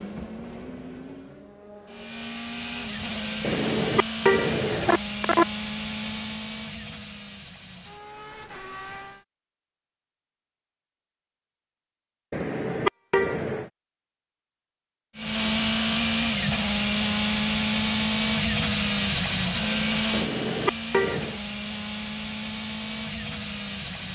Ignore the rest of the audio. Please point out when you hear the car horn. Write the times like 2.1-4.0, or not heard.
3.4-5.5, 12.3-13.7, 20.1-21.4.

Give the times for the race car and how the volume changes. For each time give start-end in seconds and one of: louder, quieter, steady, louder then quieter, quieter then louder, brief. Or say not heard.
0.0-9.2 louder then quieter
15.2-24.1 quieter.